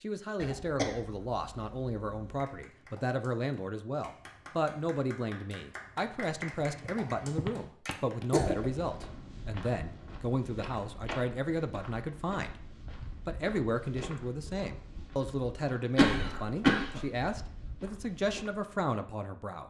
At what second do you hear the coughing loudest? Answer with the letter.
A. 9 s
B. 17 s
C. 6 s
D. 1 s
B.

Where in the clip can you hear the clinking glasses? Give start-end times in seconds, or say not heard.
not heard.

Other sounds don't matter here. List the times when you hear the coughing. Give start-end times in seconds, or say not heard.
0.4-2.4, 7.9-8.7, 15.9-17.1.